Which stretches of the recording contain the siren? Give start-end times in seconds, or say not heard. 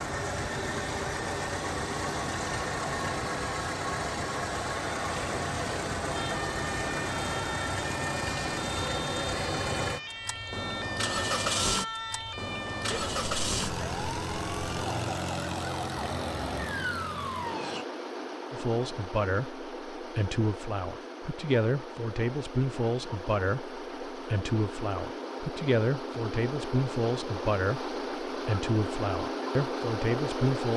6.1-17.9.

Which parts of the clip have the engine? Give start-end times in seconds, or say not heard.
0.0-30.7.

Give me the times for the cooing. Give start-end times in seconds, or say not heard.
not heard.